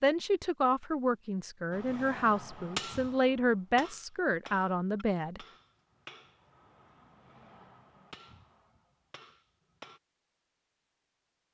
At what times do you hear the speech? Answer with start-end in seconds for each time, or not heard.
0.0-5.4.